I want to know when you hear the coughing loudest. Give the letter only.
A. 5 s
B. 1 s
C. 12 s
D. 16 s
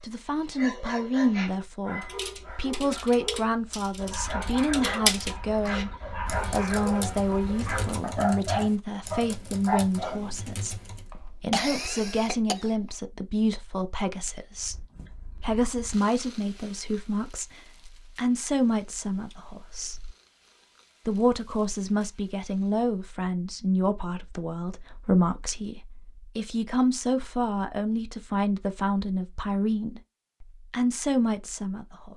C.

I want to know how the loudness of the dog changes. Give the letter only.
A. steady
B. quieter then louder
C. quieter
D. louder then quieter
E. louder
E.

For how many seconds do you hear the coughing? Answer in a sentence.
The coughing can be heard for 2 seconds in total.